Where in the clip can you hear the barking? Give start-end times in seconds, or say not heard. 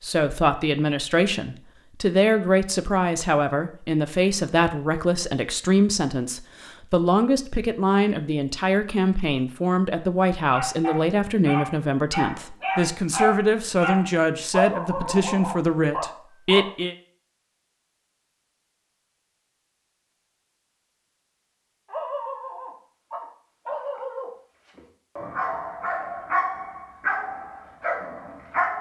10.5-16.6, 21.9-28.7.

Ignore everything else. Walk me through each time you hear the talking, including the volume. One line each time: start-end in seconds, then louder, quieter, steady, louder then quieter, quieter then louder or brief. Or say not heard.
0.0-16.9 steady.